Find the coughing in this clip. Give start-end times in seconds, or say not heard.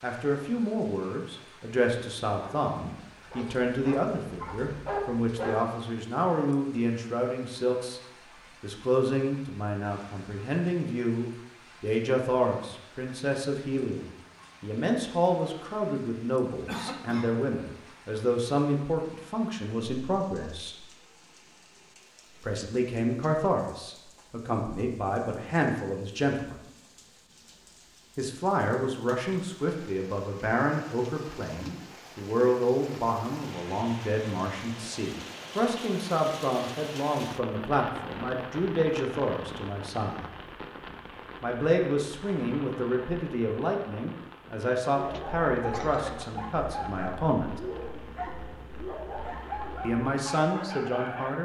16.6-17.4, 45.1-46.3.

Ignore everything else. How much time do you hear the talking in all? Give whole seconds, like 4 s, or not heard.
44 s.